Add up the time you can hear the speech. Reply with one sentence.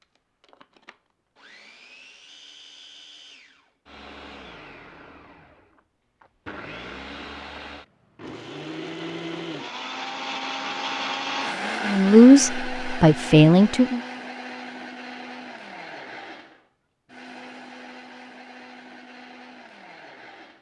The speech can be heard for 2 seconds in total.